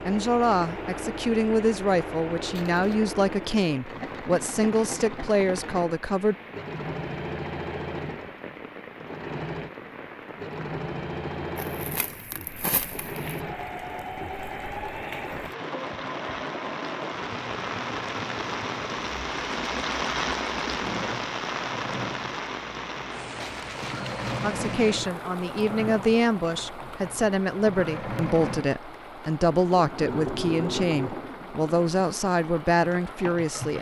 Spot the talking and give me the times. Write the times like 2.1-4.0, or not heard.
0.1-6.3, 24.4-33.7.